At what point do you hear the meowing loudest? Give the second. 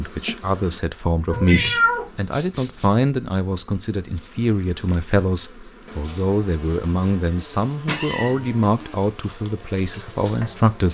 2 s.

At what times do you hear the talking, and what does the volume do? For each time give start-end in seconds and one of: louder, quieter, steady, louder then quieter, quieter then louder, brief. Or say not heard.
0.0-10.8 steady.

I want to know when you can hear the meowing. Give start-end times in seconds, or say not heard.
1.3-2.9, 7.8-8.8.